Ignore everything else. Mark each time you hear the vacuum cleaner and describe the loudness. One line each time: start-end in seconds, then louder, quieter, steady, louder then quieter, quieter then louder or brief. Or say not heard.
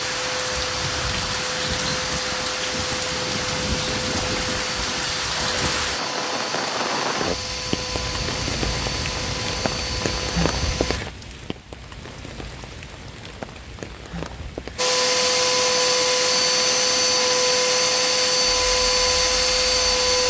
0.0-11.0 steady
14.8-20.2 steady.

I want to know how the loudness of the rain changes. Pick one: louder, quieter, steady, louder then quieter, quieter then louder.
quieter.